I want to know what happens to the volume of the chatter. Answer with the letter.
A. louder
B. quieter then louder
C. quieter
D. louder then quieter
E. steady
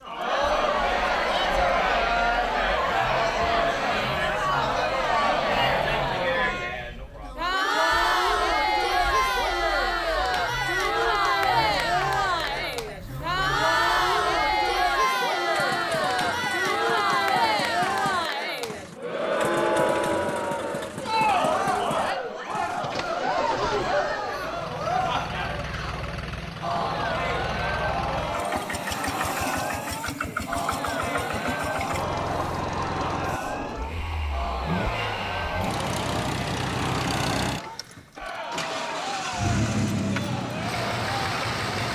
C.